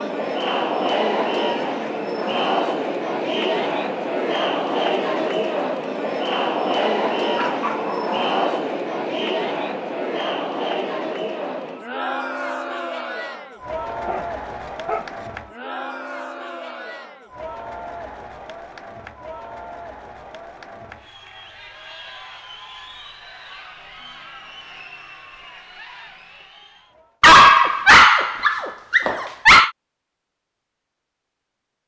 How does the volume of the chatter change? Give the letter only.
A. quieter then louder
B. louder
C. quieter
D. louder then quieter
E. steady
C.